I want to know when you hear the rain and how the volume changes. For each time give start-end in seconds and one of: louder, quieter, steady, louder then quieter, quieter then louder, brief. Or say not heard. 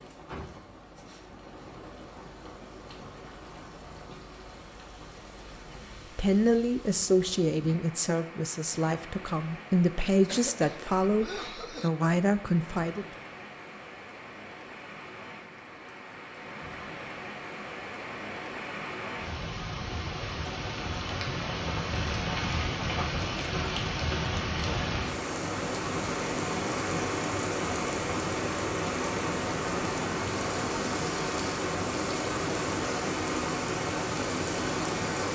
0.0-35.3 louder.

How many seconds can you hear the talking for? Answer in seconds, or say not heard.
7 s.